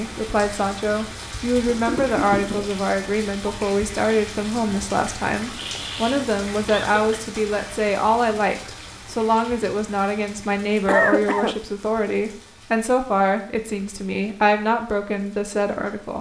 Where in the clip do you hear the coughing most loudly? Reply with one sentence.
The volume of the coughing peaks at 11 seconds.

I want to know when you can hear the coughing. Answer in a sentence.
You can hear the coughing from 1.6 to 2.7 s, from 5.5 to 7.0 s and from 10.8 to 11.6 s.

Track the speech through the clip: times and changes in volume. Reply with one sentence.
The speech can be heard from 0.0 to 16.1 s, at a steady volume.